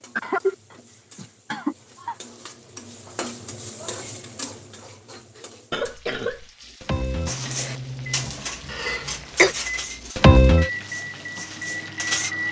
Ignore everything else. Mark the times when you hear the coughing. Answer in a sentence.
The coughing can be heard from 0.1 to 2.1 s, from 5.7 to 6.5 s and from 8.7 to 9.6 s.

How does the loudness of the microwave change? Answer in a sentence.
The volume of the microwave goes up, then down.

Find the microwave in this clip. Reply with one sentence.
The microwave can be heard from 6.8 to 12.4 s.